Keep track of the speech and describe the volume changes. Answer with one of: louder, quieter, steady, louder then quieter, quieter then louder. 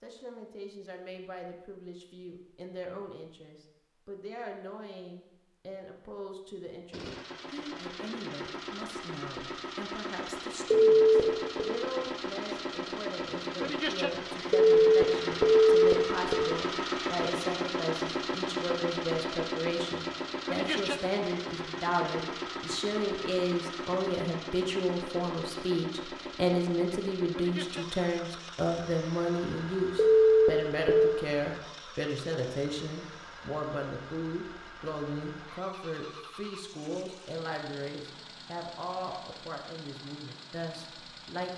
louder then quieter.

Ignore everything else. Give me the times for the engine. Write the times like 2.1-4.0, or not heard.
6.9-41.5.